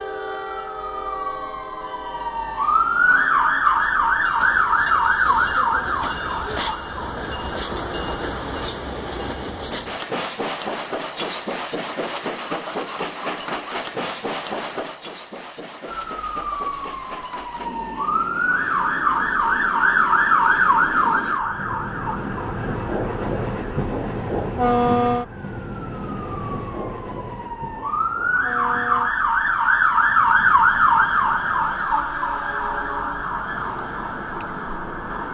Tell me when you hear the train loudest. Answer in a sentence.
The loudest moment of the train is at 25 seconds.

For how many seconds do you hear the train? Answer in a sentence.
You can hear the train for 35 seconds altogether.